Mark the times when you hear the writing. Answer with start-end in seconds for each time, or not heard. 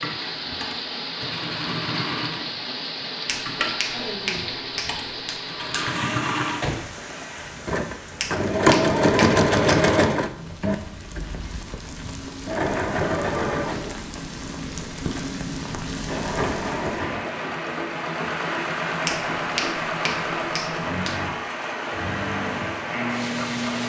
not heard.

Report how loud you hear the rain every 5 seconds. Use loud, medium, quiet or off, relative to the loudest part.
loud, medium, medium, loud, loud.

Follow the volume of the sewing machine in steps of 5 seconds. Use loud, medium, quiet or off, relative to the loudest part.
medium, loud, medium, medium, medium.